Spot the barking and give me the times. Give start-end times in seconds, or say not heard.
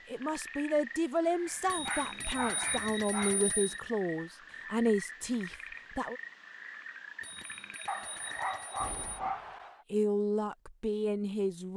1.4-3.5, 7.8-9.8.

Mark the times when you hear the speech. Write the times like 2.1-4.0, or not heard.
0.1-6.2, 9.9-11.7.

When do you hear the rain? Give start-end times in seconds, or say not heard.
not heard.